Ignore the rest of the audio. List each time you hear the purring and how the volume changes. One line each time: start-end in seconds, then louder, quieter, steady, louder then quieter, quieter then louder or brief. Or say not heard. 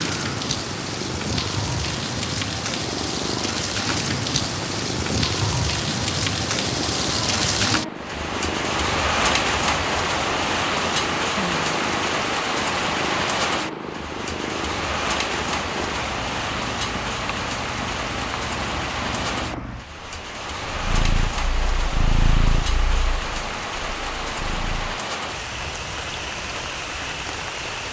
0.0-25.0 steady.